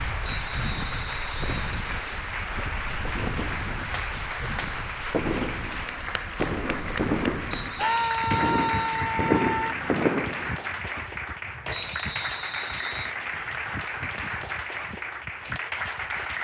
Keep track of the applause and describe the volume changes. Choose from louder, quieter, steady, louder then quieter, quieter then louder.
steady.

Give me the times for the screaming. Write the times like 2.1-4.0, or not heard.
7.8-9.8.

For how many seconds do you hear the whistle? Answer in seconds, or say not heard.
5 s.